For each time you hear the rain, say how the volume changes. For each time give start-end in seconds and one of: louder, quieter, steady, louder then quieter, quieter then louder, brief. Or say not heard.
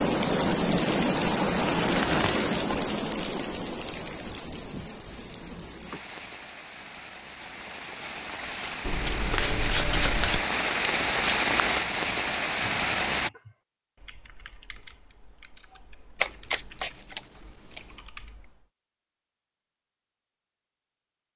0.0-13.3 quieter then louder.